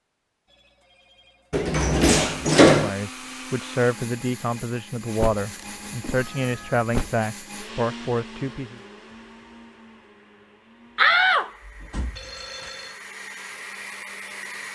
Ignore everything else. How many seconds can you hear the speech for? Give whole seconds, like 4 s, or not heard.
6 s.